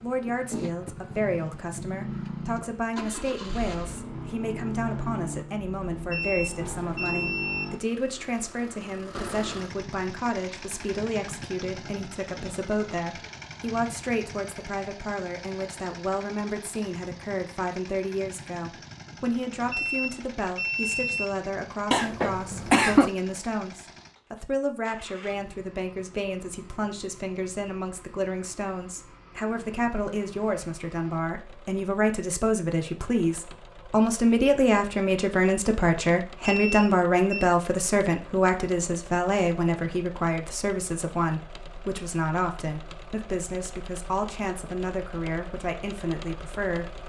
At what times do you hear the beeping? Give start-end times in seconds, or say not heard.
6.1-7.8, 19.7-21.4, 36.5-37.5.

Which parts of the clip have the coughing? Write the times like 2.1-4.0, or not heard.
21.9-23.1.